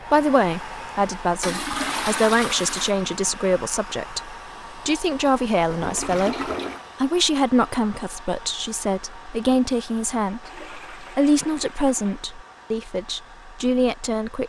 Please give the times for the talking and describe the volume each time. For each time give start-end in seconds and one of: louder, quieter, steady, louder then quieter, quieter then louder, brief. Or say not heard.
0.1-14.4 steady.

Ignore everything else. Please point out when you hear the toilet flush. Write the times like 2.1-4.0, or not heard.
1.4-3.0, 5.7-6.9, 10.4-12.2.